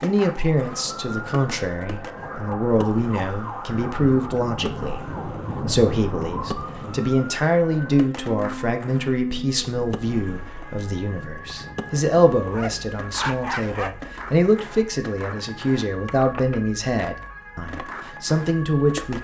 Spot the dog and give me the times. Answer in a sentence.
The dog can be heard from 12.5 to 13.9 s.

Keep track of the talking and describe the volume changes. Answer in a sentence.
The loudness of the talking stays about the same.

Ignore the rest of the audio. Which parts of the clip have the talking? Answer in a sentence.
The talking can be heard from 0.0 to 19.1 s.